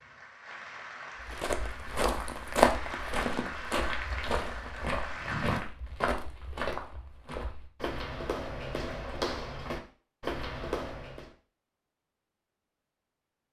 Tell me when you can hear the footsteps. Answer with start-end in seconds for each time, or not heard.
1.2-11.3.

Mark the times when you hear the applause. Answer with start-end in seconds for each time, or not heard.
0.0-5.6.